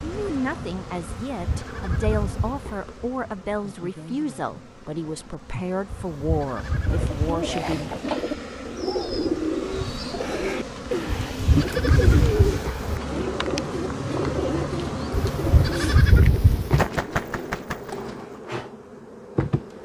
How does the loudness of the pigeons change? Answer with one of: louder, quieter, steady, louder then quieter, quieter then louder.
steady.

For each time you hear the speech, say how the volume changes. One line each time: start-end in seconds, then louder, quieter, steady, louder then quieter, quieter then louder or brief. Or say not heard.
0.0-7.9 steady.